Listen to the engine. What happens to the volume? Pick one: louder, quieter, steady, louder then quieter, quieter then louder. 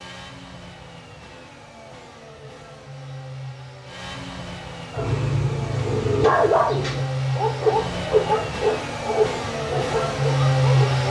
louder.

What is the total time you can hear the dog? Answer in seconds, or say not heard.
6 s.